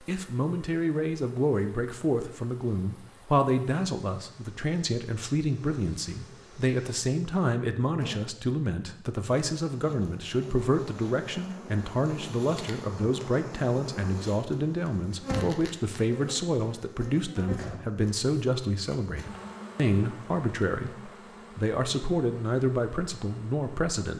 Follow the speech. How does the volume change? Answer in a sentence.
The volume of the speech stays about the same.